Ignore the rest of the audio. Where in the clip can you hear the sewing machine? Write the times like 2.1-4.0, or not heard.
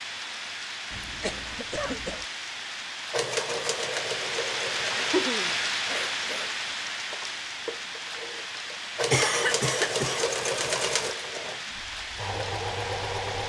3.1-13.4.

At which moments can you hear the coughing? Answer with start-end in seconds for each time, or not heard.
0.9-2.2, 4.9-6.5, 9.1-10.2.